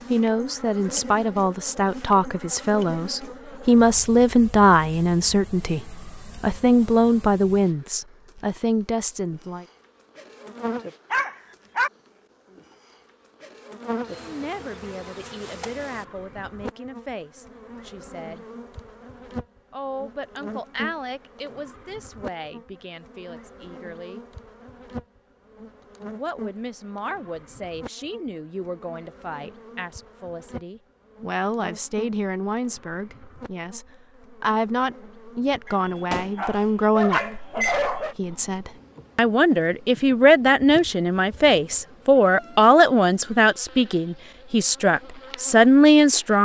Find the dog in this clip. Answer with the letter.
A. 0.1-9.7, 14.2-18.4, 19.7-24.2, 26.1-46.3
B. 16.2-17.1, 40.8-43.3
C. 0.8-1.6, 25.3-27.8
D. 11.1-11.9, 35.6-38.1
D.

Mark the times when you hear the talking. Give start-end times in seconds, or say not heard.
0.1-9.7, 14.2-18.4, 19.7-24.2, 26.1-46.3.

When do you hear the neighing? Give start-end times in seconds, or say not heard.
not heard.